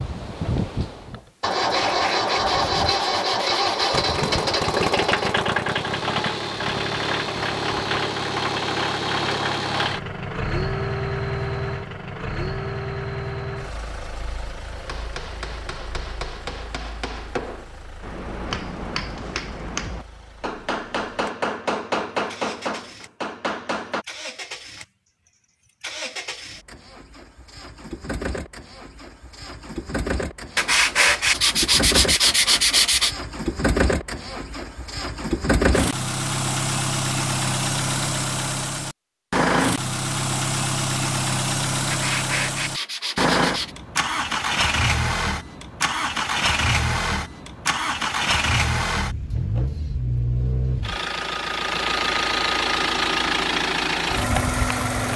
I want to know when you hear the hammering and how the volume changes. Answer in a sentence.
The hammering can be heard from 14.8 to 24.1 s, getting louder.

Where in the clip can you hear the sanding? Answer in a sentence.
You can hear the sanding from 1.6 to 4.0 s, from 30.6 to 33.1 s and from 41.9 to 43.8 s.